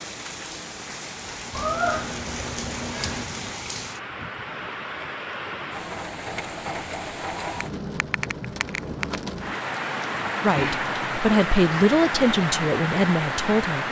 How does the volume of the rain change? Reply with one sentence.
The volume of the rain goes up.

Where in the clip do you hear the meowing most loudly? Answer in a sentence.
The loudest moment of the meowing is at 2 seconds.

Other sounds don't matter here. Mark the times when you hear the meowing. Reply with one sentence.
You can hear the meowing from 1.6 to 3.2 s.